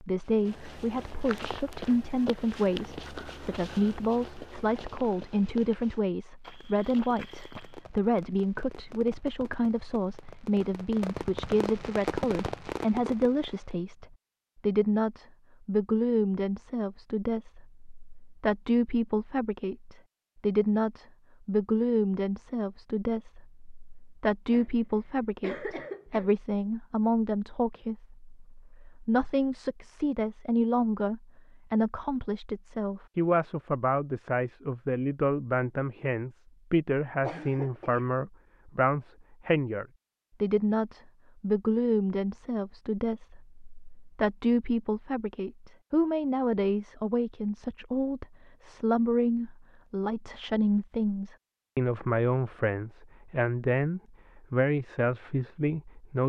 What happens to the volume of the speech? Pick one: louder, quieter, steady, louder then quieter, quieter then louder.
steady.